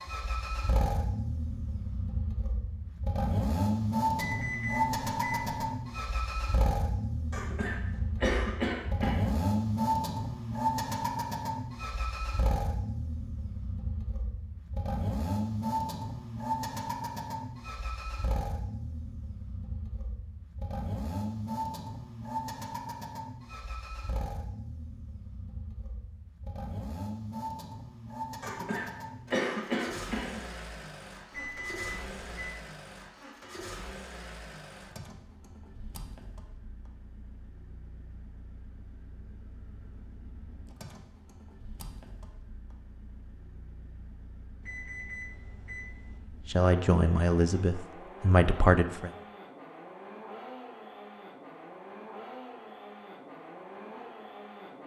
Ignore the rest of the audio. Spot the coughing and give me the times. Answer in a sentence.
The coughing can be heard from 7.3 to 9.3 s and from 28.4 to 30.4 s.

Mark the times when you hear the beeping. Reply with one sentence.
You can hear the beeping from 4.2 to 5.5 s, from 31.3 to 32.5 s and from 44.6 to 46.2 s.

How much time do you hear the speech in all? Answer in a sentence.
The speech can be heard for 3 seconds in total.